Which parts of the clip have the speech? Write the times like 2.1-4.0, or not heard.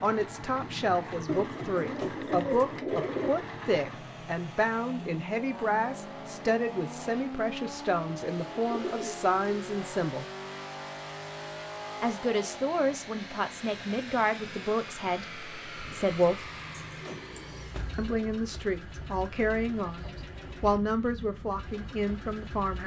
0.0-10.2, 12.0-16.5, 17.9-22.8.